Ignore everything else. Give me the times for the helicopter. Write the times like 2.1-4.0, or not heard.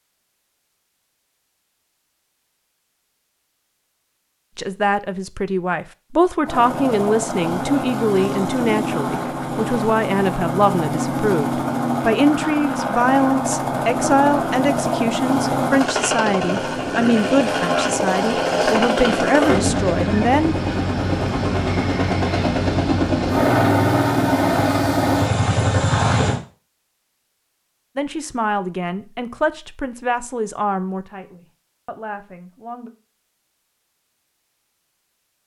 6.4-26.4.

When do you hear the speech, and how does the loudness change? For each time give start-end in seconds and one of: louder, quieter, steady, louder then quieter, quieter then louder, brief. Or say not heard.
4.5-20.6 steady
27.9-32.9 quieter.